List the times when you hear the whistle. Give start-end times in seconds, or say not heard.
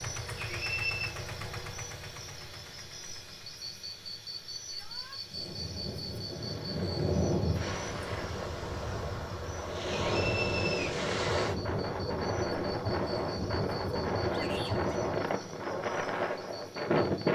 0.3-1.1, 9.9-10.9.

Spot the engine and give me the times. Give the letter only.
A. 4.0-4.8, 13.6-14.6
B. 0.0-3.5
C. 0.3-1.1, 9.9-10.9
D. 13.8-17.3
B.